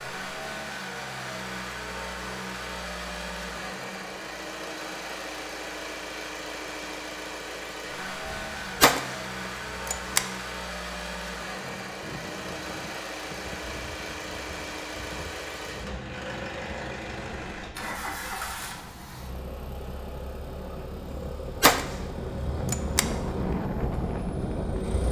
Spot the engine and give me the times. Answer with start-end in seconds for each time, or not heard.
0.0-25.0.